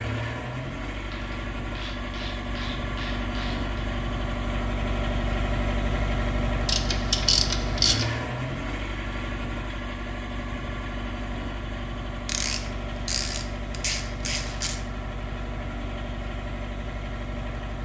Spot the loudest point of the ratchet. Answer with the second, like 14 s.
7 s.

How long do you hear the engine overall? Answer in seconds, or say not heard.
18 s.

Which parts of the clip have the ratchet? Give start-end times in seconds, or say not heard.
1.1-3.8, 6.7-8.2, 12.2-14.8.